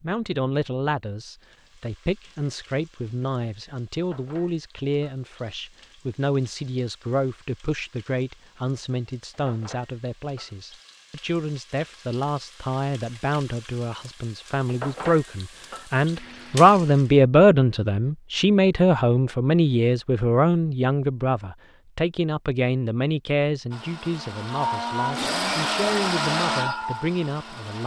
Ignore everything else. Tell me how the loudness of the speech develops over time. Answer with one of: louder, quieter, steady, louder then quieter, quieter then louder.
louder then quieter.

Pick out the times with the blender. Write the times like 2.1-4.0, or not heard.
23.7-27.8.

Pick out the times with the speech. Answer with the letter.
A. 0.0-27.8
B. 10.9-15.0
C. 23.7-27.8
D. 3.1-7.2
A.